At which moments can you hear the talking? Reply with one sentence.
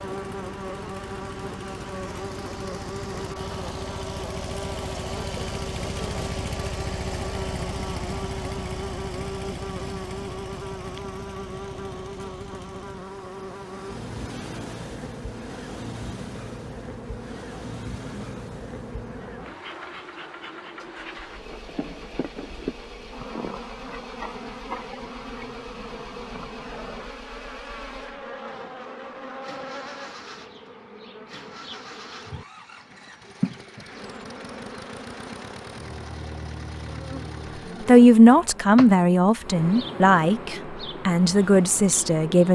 The talking can be heard from 37.9 to 42.5 s.